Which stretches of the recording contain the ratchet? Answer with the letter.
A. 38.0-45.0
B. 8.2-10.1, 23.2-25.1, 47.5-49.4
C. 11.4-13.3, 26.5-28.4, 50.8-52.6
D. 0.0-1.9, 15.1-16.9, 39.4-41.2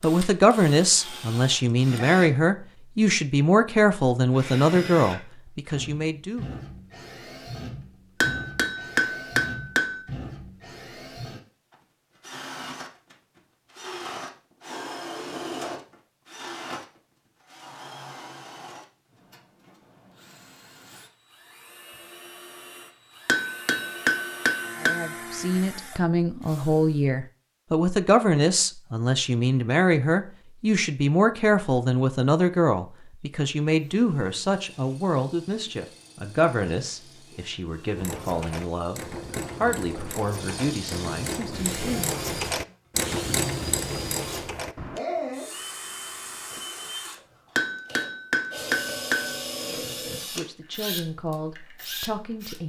A.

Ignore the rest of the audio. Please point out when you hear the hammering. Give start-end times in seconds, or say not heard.
8.2-10.1, 23.2-25.1, 47.5-49.4.